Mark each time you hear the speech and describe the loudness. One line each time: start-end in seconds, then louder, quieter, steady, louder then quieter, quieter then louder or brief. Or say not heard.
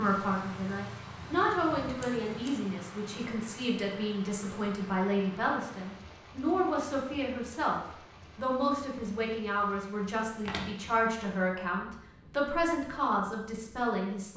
0.0-14.3 steady.